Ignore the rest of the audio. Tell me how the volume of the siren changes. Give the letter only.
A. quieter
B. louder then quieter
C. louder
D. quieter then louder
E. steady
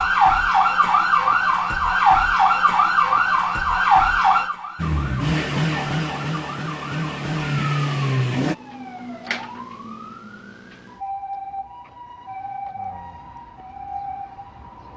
A.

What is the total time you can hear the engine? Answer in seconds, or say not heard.
4 s.